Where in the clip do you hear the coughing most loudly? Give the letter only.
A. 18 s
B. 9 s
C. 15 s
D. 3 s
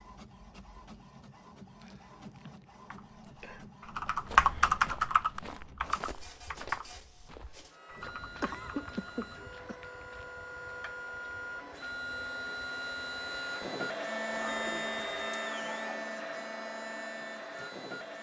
B.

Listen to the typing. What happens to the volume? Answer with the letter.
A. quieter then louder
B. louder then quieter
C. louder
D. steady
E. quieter
E.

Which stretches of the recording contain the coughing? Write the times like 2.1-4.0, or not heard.
1.8-3.6, 8.0-9.8, 14.3-15.2.